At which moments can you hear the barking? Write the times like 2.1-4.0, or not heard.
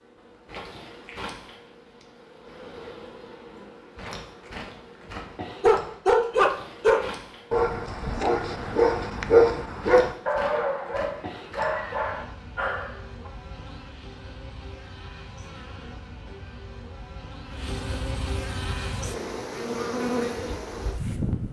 5.6-13.3.